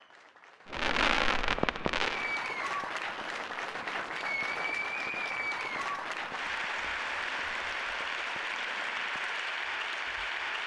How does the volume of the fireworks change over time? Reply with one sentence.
The loudness of the fireworks goes down.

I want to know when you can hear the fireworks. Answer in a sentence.
You can hear the fireworks from 0.7 to 9.4 s.